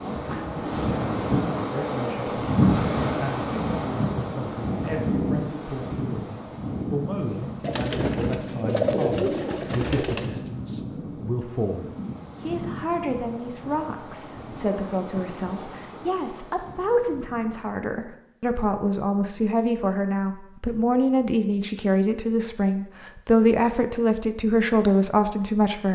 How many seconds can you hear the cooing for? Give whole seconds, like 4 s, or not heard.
3 s.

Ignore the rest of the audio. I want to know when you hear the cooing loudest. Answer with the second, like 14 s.
9 s.